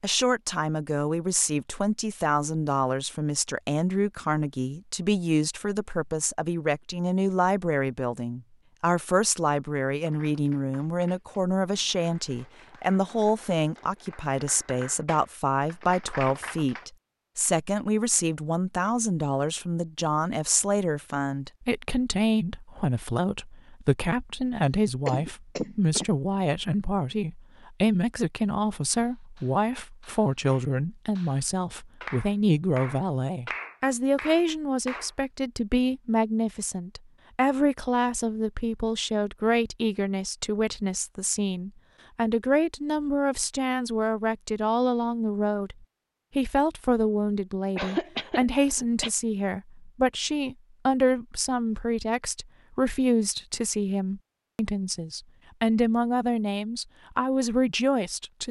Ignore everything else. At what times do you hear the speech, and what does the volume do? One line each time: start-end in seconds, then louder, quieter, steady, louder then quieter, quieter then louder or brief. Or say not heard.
0.0-45.8 steady
46.4-58.4 steady.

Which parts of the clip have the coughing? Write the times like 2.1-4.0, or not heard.
25.1-26.1, 47.8-49.1.